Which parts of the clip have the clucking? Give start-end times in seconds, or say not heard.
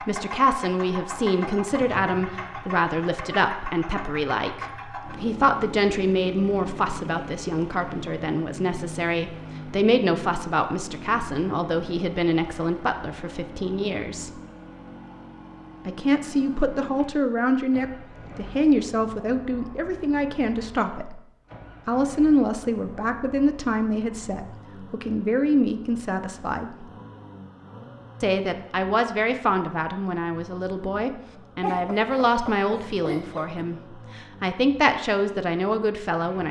31.6-33.6.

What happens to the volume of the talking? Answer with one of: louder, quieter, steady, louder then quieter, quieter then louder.
steady.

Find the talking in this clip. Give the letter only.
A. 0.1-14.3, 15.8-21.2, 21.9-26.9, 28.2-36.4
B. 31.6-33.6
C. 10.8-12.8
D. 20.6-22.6
A.